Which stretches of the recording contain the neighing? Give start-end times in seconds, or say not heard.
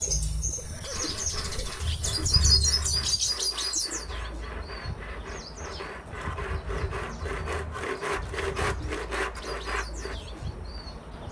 0.6-1.9.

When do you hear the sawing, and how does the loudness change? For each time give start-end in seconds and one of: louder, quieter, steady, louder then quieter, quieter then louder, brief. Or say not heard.
0.8-10.2 louder.